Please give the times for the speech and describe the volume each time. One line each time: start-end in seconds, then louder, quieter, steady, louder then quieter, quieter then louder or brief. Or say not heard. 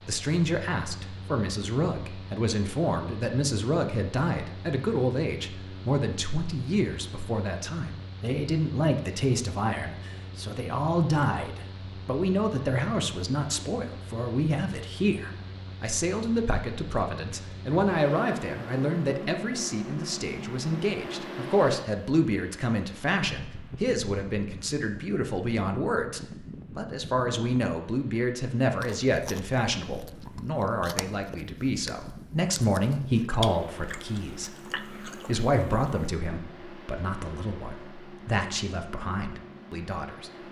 0.1-40.3 steady.